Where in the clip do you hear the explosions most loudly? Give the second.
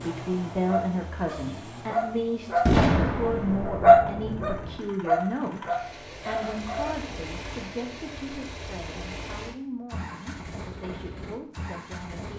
3 s.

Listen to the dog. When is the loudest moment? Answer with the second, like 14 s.
4 s.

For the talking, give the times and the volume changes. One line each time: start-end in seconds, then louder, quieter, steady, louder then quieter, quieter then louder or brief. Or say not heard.
0.0-12.3 quieter.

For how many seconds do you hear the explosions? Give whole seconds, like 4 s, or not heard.
2 s.